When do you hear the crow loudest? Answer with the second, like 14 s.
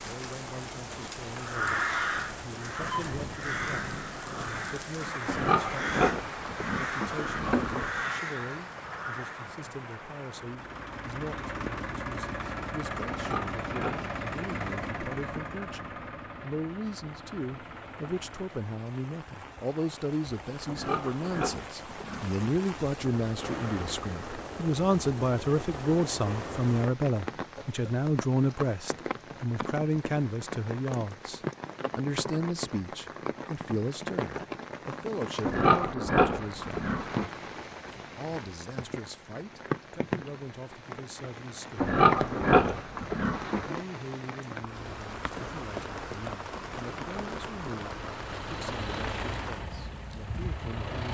2 s.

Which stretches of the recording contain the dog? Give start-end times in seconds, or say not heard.
not heard.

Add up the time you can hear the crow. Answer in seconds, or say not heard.
8 s.